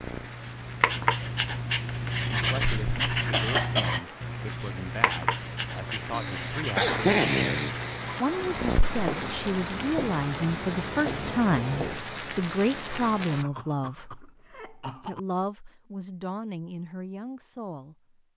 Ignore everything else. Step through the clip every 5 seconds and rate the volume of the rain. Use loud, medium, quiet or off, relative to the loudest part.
medium, loud, loud, off.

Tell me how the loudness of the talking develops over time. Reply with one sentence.
The volume of the talking goes up, then down.